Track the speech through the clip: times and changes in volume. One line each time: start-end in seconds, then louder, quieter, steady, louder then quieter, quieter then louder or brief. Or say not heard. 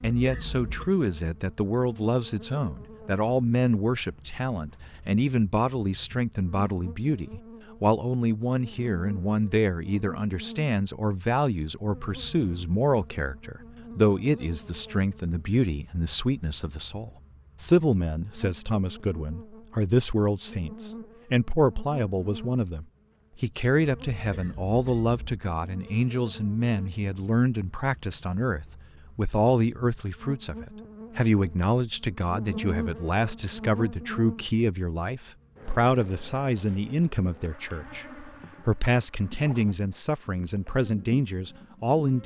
0.0-42.2 steady.